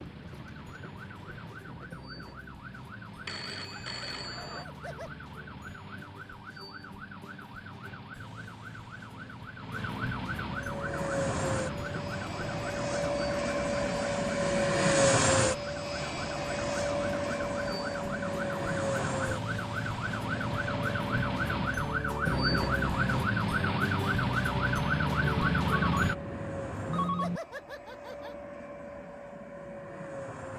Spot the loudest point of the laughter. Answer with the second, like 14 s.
27 s.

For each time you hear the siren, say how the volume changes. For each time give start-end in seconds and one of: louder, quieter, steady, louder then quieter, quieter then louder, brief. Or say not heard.
0.0-26.1 louder.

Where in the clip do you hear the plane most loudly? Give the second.
15 s.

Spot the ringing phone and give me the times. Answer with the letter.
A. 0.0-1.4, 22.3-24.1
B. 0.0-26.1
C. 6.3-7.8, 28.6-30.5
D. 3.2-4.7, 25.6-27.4
D.